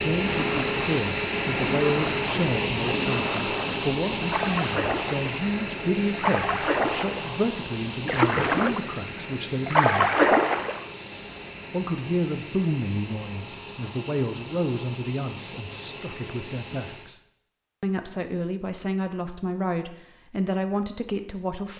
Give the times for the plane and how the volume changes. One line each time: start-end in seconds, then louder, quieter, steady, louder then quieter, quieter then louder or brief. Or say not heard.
0.0-17.1 quieter.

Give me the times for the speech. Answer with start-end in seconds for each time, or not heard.
0.0-10.1, 11.7-17.1, 17.8-21.7.